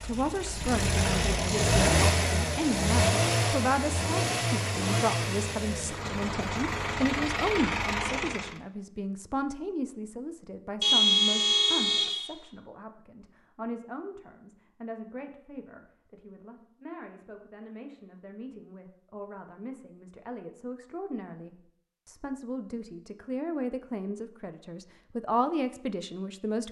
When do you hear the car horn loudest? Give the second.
11 s.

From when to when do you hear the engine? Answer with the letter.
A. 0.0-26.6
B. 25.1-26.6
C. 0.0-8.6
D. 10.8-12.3
C.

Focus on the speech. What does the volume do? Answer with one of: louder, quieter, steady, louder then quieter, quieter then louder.
quieter then louder.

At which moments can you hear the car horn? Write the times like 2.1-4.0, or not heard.
10.8-12.3.